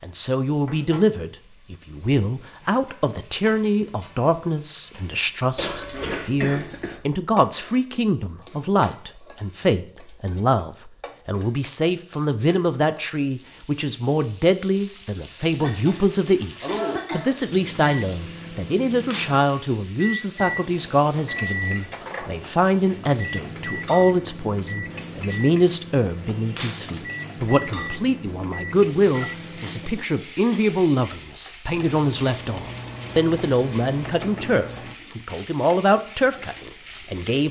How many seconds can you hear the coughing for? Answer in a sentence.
The coughing can be heard for 5 seconds in total.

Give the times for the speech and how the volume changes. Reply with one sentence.
You can hear the speech from 0.0 to 37.4 s, at a steady volume.